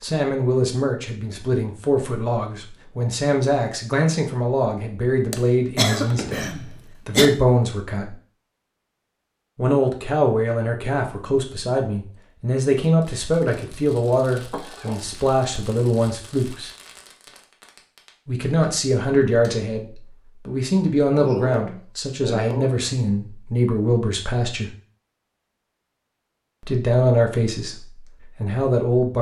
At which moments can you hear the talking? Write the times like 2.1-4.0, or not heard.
0.0-6.5, 7.0-8.2, 9.6-16.7, 18.2-24.7, 26.6-29.1.